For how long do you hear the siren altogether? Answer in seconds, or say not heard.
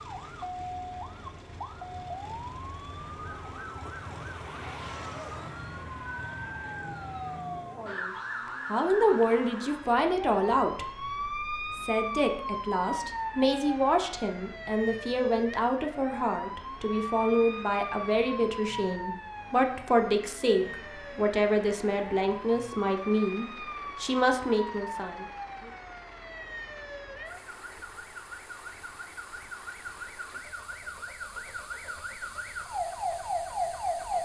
34 s.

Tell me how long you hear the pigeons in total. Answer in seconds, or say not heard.
not heard.